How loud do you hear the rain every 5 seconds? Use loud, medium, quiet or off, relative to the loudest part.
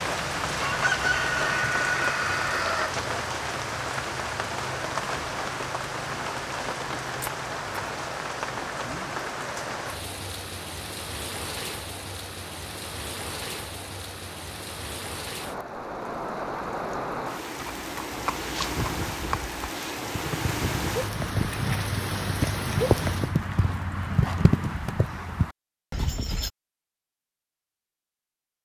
loud, loud, medium, loud, loud, off.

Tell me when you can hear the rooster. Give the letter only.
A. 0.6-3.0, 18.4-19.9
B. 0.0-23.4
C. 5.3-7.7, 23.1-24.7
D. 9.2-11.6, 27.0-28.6
A.